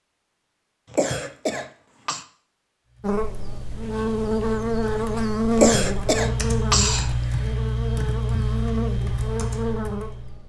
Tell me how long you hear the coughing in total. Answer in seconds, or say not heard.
3 s.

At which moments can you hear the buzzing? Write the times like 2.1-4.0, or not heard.
3.0-10.4.